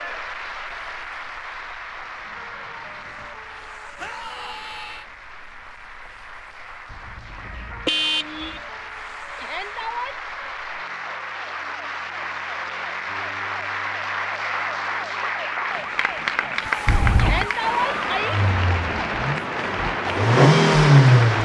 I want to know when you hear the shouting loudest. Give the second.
18 s.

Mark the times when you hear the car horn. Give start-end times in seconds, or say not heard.
6.9-8.6, 16.9-17.5.